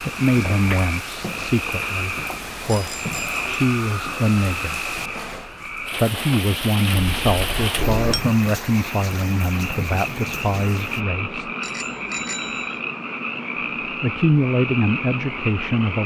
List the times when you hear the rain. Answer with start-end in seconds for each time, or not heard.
0.0-11.1.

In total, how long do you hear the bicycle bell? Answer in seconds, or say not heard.
3 s.